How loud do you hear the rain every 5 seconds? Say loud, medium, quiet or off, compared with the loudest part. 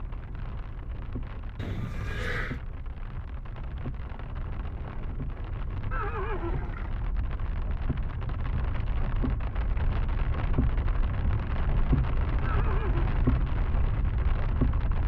medium, medium, loud.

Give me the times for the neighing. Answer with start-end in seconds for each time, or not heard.
1.6-2.6, 5.9-6.9, 12.4-13.2.